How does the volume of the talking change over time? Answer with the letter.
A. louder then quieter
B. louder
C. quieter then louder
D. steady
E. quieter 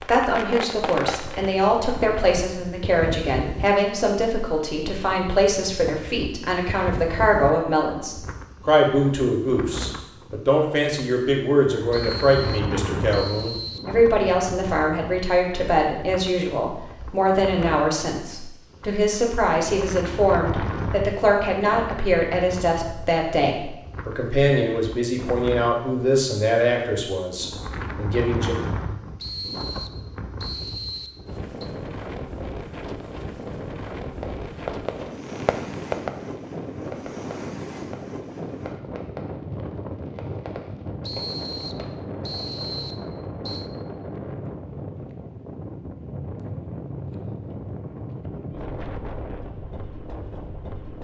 D.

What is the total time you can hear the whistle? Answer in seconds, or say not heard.
7 s.